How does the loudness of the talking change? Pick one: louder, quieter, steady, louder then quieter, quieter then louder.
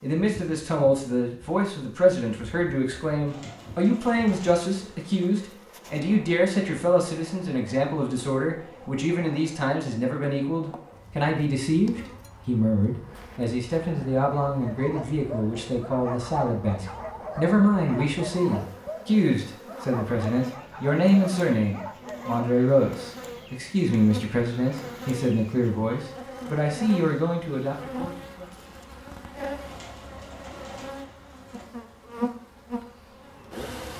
steady.